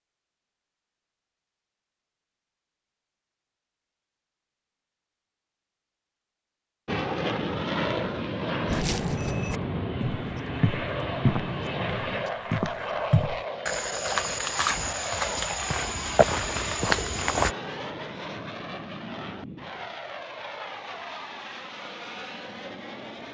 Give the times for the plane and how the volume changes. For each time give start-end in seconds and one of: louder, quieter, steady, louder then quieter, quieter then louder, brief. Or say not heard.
6.8-23.2 quieter.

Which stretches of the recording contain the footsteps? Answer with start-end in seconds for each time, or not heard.
8.7-17.5.